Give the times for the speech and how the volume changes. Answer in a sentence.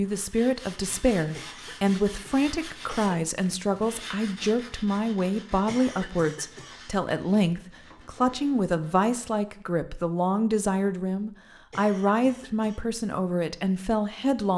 The speech can be heard from 0.0 to 14.5 s, at a steady volume.